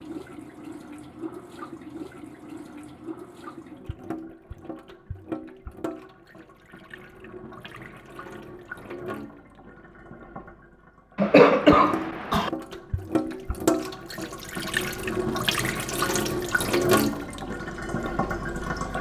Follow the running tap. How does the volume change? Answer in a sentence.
The volume of the running tap goes up.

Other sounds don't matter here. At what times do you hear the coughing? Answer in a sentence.
The coughing can be heard from 11.2 to 12.5 s.